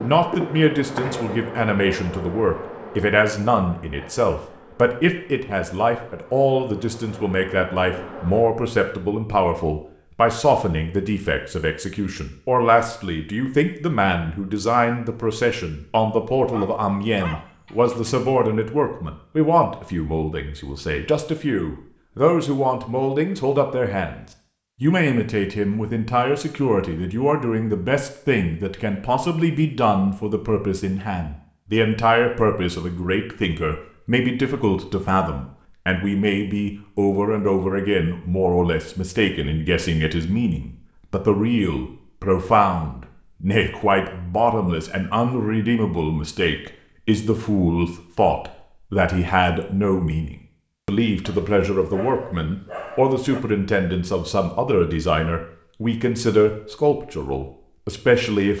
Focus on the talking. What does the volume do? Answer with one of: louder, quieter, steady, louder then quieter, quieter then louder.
steady.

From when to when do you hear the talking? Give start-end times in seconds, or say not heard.
0.0-58.5.